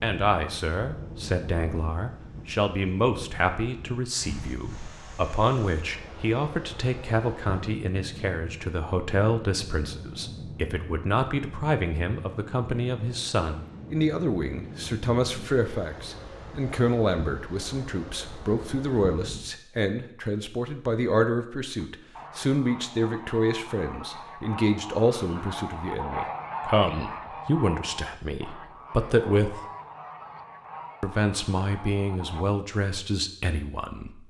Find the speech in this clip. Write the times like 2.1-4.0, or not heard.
0.0-29.6, 31.0-34.2.